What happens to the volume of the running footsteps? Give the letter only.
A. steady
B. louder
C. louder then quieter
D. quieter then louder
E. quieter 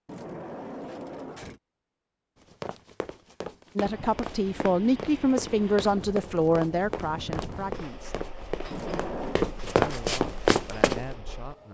B.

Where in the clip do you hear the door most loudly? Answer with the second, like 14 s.
9 s.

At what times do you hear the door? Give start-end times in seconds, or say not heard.
0.1-1.6, 8.7-9.4.